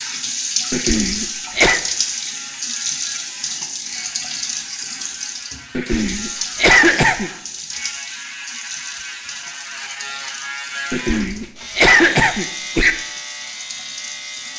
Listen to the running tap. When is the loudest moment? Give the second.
1 s.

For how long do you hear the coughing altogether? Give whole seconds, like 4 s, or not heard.
5 s.